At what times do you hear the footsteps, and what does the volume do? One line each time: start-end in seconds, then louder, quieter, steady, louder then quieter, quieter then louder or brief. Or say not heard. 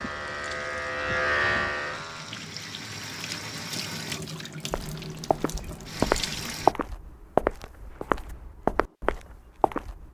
4.7-10.0 louder then quieter.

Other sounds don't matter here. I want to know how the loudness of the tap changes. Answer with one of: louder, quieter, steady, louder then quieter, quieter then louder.
louder.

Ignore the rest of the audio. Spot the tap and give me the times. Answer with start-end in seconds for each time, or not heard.
0.0-6.8.